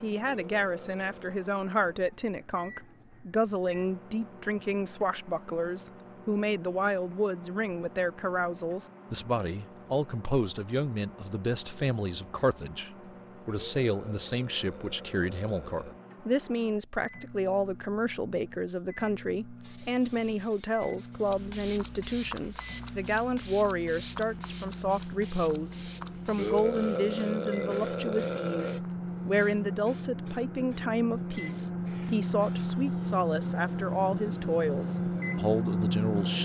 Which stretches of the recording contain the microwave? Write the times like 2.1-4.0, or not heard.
0.0-36.4.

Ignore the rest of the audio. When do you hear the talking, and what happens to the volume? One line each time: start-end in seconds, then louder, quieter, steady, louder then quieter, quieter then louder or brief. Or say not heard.
0.0-36.4 steady.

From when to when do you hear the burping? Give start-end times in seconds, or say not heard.
0.2-1.1, 13.4-15.9, 26.4-28.8.